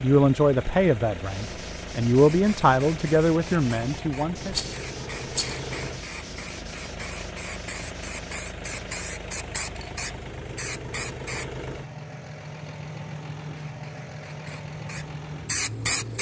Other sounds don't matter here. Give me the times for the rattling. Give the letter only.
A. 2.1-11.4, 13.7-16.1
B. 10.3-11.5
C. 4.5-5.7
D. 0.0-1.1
C.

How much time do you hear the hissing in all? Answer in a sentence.
The hissing can be heard for 12 seconds in total.